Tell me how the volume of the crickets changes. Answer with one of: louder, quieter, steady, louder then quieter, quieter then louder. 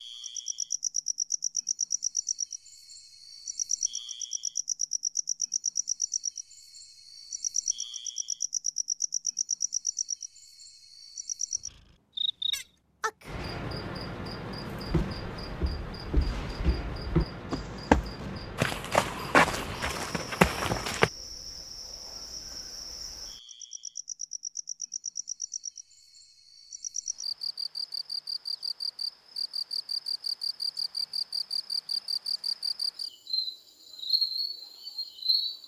quieter then louder.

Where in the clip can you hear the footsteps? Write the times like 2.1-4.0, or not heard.
14.8-21.1.